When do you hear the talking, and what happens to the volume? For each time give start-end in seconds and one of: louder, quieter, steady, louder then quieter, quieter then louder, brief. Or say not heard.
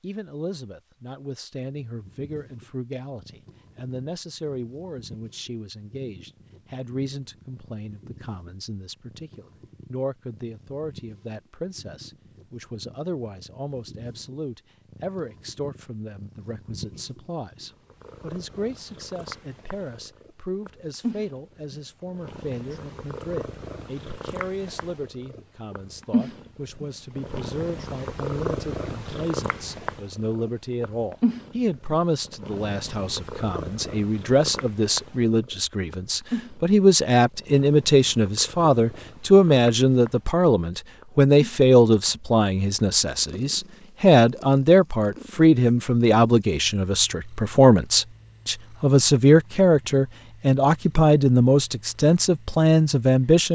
0.0-53.5 louder.